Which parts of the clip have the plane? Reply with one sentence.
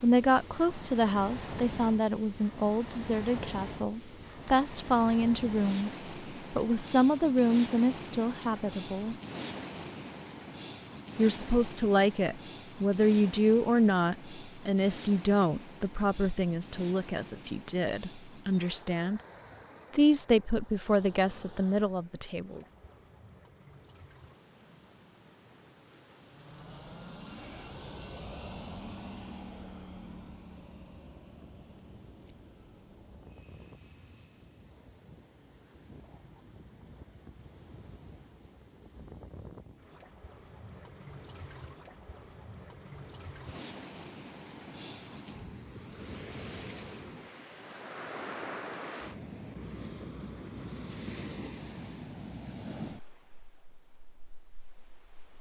You can hear the plane from 26.1 to 34.7 s.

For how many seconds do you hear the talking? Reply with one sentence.
You can hear the talking for 20 seconds altogether.